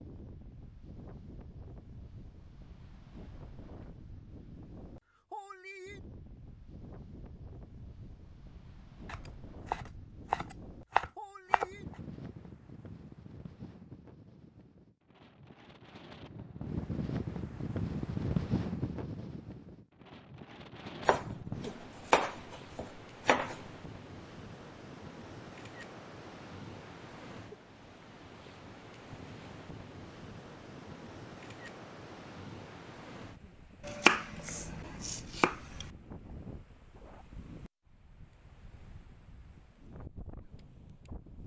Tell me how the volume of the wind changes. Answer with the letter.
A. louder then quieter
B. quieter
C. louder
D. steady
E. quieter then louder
A.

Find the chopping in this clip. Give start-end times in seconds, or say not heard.
9.1-11.7, 21.1-23.6, 33.9-35.9.